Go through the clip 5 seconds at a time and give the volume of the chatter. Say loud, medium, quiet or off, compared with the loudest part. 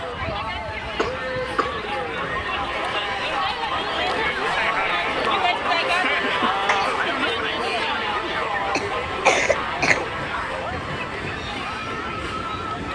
loud, loud, medium.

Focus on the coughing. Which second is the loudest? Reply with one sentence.
The loudest moment of the coughing is at 9 seconds.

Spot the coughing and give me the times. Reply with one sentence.
You can hear the coughing from 0.9 to 1.8 s, from 6.2 to 7.0 s and from 8.7 to 10.1 s.